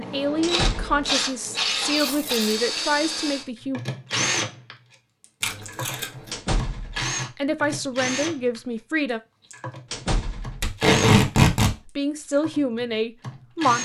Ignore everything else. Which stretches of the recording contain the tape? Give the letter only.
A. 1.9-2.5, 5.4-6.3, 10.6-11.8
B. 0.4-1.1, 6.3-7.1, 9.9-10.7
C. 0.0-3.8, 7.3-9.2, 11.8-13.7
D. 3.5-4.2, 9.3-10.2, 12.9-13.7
A.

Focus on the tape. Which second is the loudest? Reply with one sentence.
The volume of the tape peaks at 11 seconds.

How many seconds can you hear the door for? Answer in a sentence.
You can hear the door for 2 seconds altogether.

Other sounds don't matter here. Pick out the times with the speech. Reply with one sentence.
The speech can be heard from 0.0 to 3.8 s, from 7.3 to 9.2 s and from 11.8 to 13.7 s.